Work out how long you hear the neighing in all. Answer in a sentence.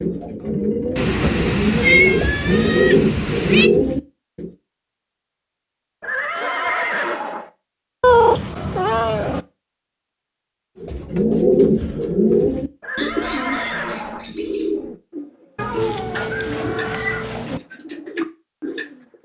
You can hear the neighing for 3 seconds altogether.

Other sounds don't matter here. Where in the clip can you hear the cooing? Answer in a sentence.
You can hear the cooing from 0.0 to 4.5 s and from 10.8 to 19.1 s.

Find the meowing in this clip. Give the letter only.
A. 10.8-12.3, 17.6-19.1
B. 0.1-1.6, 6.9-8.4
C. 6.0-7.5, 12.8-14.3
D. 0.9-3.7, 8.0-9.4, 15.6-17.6
D.